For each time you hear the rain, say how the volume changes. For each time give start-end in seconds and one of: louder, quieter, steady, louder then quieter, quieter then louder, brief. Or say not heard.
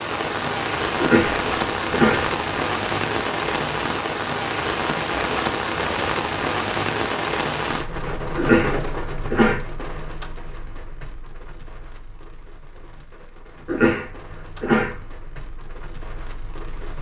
0.0-16.9 quieter.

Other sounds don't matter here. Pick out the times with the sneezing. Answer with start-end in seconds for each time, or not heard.
0.9-2.3, 8.3-9.6, 13.7-15.0.